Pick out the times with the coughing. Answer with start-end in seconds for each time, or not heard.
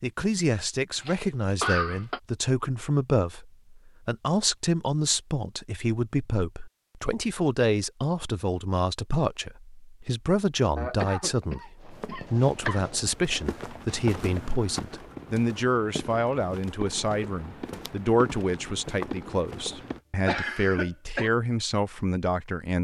0.9-2.2, 10.8-12.8, 19.8-21.3.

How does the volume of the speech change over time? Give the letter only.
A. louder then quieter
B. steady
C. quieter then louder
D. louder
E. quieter
B.